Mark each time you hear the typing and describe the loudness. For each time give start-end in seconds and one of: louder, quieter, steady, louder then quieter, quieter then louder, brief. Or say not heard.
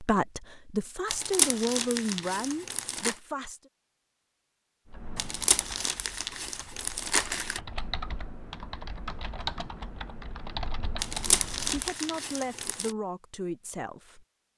4.9-11.9 louder.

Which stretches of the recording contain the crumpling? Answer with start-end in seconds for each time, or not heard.
1.1-3.1, 5.2-7.6, 10.9-12.9.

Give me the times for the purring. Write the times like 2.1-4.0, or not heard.
not heard.